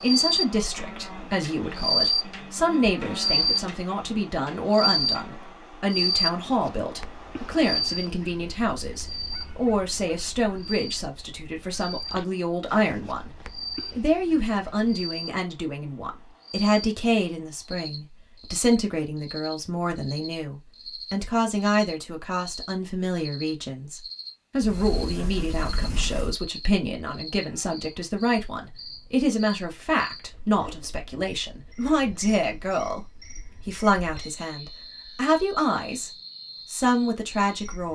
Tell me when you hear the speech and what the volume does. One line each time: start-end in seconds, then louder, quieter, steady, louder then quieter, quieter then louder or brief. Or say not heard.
0.0-36.1 steady
36.7-37.9 brief.